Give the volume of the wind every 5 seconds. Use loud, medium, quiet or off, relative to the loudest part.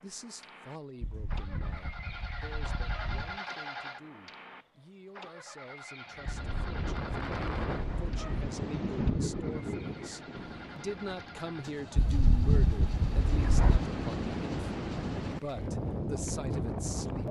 off, loud, loud, loud.